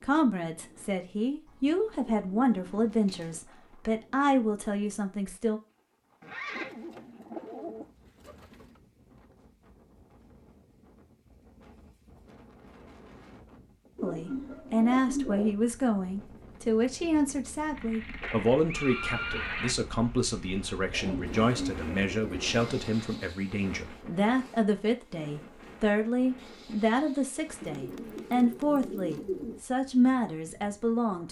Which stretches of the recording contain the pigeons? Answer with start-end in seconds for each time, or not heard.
1.4-3.4, 6.5-8.7, 13.9-15.6, 20.9-22.7, 27.6-29.6.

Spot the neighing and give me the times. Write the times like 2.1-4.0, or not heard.
6.2-6.8, 17.8-19.8.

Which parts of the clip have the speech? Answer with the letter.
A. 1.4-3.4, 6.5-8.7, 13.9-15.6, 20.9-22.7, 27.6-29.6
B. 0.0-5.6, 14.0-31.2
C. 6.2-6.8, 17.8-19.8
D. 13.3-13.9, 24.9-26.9
B.